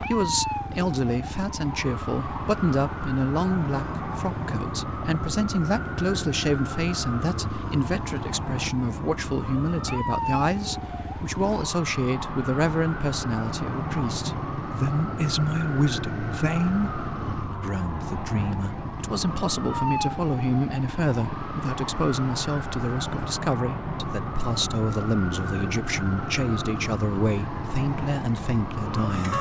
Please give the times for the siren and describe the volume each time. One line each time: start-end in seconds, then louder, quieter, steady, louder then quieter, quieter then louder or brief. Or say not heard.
0.0-29.3 steady.